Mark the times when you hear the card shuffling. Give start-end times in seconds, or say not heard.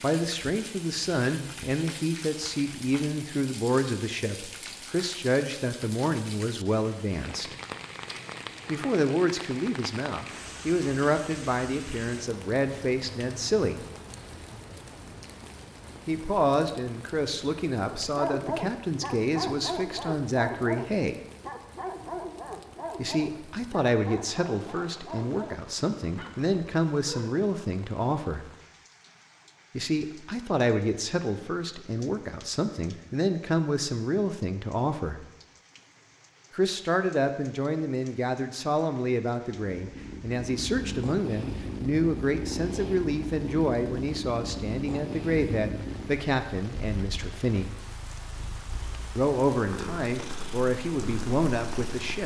not heard.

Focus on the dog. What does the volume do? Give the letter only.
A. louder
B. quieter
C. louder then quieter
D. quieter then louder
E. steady
B.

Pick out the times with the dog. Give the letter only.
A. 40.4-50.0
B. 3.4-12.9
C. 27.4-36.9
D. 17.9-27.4
D.